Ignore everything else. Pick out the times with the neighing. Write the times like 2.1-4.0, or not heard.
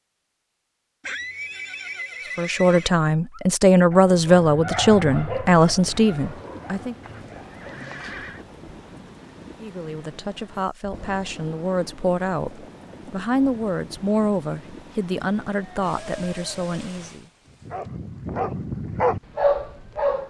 1.0-2.9, 7.0-8.4, 15.8-16.9.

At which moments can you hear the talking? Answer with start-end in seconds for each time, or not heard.
2.4-7.0, 9.6-17.3.